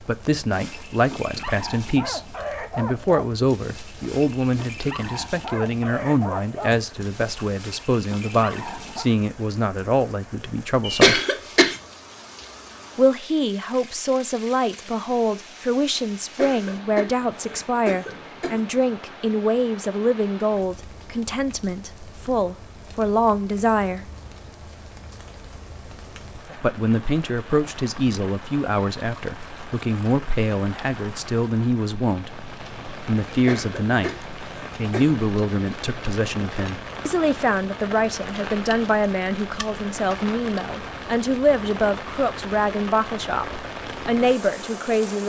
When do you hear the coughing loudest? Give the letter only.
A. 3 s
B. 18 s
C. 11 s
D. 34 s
C.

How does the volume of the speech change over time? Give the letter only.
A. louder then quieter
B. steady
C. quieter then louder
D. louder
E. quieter
B.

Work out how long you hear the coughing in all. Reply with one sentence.
You can hear the coughing for 5 seconds altogether.